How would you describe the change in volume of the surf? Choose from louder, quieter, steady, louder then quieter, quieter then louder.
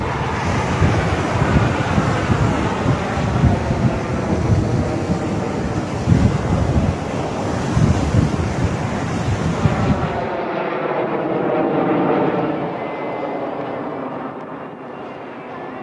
steady.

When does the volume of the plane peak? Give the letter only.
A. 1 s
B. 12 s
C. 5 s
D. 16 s
B.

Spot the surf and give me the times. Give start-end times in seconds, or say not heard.
0.0-10.4.